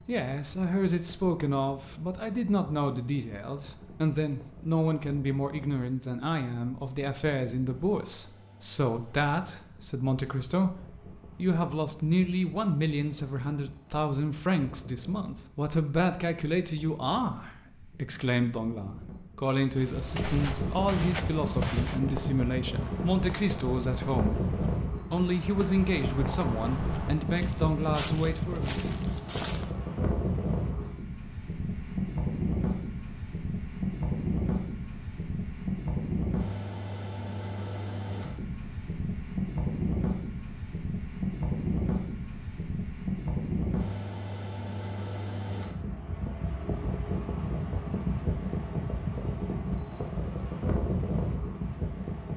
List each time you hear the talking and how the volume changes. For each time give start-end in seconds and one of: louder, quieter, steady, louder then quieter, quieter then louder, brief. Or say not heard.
0.1-28.8 steady.